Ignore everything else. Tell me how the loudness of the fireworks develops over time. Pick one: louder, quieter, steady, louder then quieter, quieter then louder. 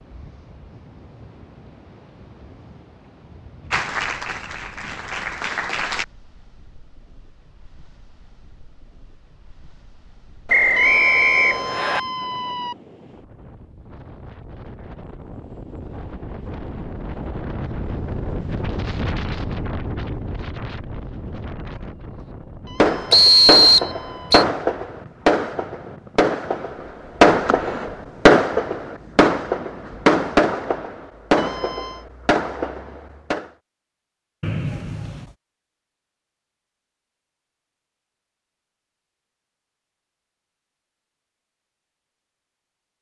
louder then quieter.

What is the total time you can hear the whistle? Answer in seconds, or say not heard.
4 s.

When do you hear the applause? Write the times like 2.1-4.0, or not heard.
3.7-6.0.